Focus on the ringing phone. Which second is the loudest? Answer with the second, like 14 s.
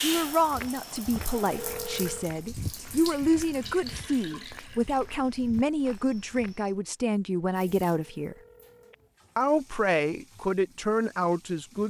2 s.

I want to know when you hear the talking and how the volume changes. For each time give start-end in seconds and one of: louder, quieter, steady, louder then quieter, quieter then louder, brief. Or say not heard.
0.0-8.3 steady
9.3-11.8 brief.